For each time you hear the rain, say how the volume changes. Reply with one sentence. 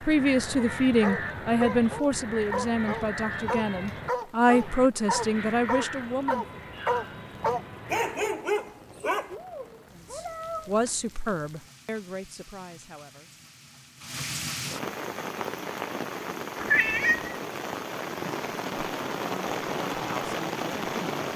The rain can be heard from 0.0 to 21.3 s, getting louder.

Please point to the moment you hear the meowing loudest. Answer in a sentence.
The loudest moment of the meowing is at 17 seconds.